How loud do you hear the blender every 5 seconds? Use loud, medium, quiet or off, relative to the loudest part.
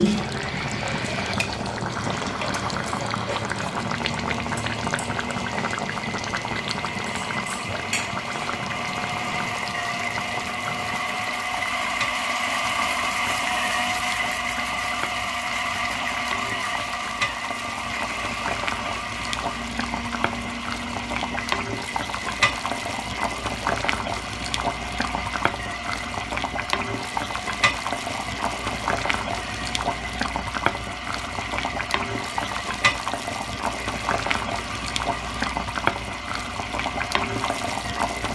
medium, medium, loud, loud, medium, medium, medium, medium.